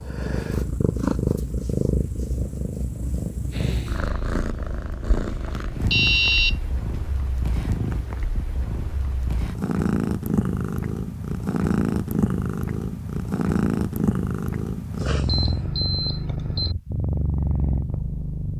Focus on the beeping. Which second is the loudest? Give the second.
6 s.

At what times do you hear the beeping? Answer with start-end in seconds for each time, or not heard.
5.7-6.5, 15.2-16.8.